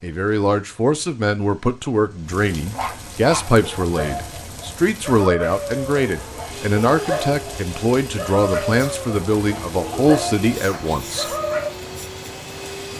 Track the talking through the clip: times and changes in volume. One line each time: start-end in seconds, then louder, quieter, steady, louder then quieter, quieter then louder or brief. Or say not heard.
0.0-11.2 steady.